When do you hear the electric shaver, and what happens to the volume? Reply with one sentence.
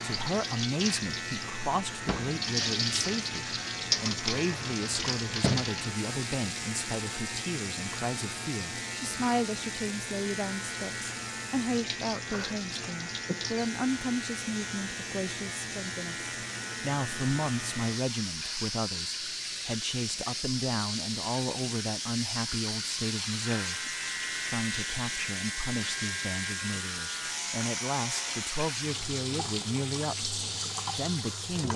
The electric shaver can be heard from 0.0 to 28.6 s, at a steady volume.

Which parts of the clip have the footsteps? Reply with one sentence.
You can't hear the footsteps here.